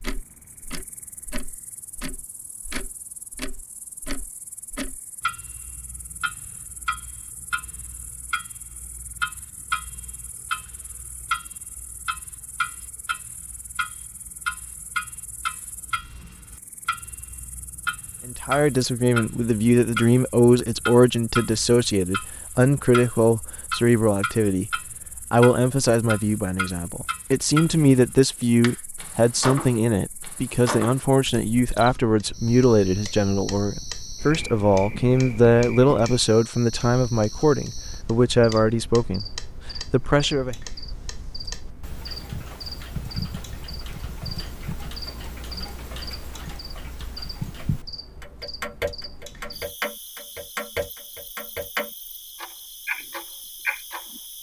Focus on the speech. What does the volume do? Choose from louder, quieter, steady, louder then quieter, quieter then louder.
steady.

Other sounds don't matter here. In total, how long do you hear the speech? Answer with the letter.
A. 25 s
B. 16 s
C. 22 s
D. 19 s
C.